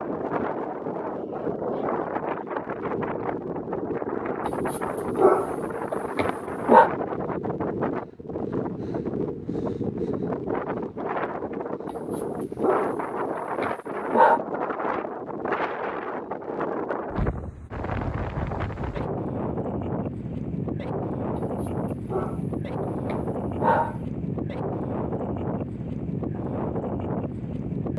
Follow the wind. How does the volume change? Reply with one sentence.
The loudness of the wind stays about the same.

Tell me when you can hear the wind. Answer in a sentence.
The wind can be heard from 0.0 to 27.9 s.